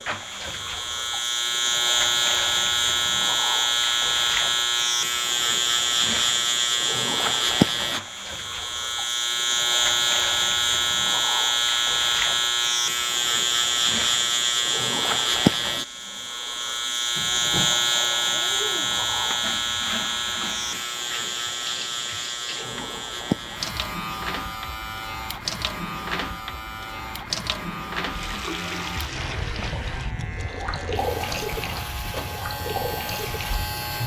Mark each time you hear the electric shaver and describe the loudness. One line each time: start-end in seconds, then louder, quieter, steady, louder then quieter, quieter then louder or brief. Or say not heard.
0.0-34.0 quieter.